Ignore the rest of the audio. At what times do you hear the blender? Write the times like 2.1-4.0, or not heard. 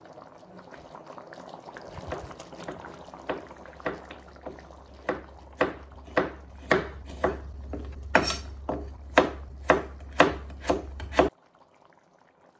not heard.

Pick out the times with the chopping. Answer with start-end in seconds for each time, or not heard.
1.7-11.3.